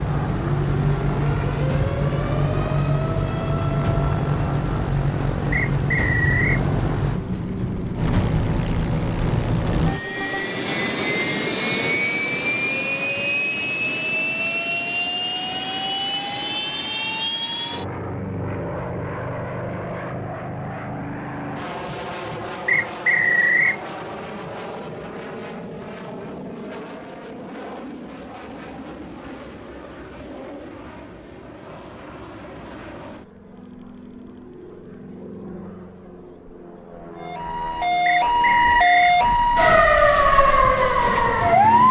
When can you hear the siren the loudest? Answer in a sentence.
The volume of the siren peaks at 40 seconds.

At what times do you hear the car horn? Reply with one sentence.
You can't hear the car horn here.